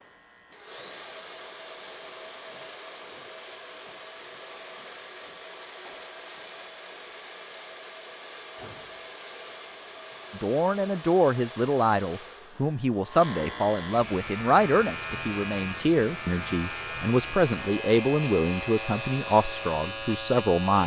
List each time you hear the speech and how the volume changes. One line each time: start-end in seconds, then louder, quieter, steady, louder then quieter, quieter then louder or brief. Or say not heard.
10.3-20.8 steady.